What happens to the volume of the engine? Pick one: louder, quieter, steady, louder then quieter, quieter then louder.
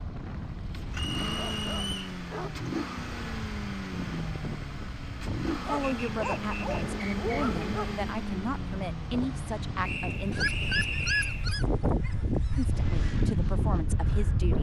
quieter.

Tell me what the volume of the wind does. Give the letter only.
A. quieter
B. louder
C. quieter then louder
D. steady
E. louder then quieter
B.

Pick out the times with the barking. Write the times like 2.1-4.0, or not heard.
1.4-2.6, 5.7-8.1, 10.3-12.7.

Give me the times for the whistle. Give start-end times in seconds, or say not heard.
0.9-2.1, 5.8-7.5, 9.8-11.4.